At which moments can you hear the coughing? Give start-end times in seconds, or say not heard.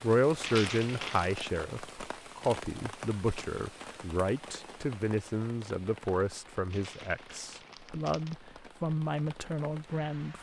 not heard.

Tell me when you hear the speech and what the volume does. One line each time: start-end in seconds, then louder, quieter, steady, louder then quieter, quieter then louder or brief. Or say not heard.
0.0-10.3 steady.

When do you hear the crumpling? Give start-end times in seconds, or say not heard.
0.4-1.3, 6.7-8.3.